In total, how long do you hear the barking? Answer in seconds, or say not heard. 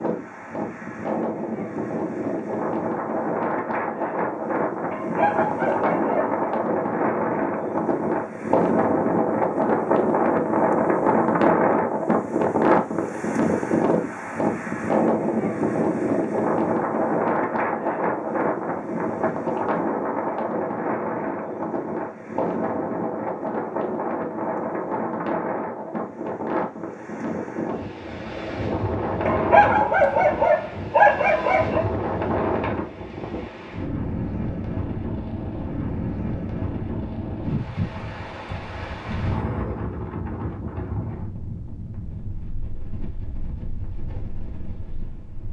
4 s.